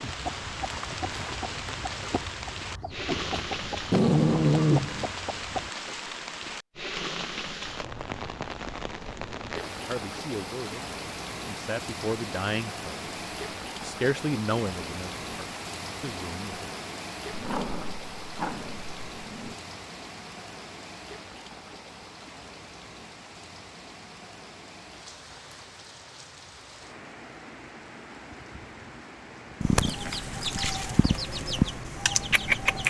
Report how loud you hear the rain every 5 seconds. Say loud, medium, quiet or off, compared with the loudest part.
loud, loud, loud, loud, medium, medium, medium.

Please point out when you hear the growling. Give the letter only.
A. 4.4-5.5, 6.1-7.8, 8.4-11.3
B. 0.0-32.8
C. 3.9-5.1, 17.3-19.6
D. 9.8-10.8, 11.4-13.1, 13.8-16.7
C.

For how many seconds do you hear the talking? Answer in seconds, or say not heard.
6 s.